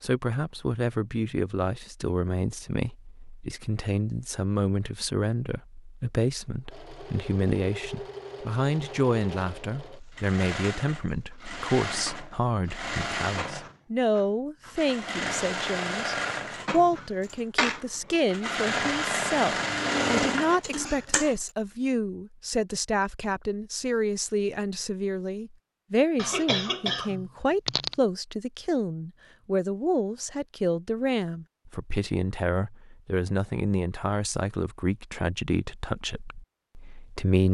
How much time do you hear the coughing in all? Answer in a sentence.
You can hear the coughing for 2 seconds altogether.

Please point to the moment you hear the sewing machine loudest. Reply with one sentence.
The loudest moment of the sewing machine is at 20 seconds.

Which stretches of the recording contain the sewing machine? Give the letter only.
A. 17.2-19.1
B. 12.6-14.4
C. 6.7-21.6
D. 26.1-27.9
C.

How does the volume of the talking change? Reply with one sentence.
The volume of the talking stays about the same.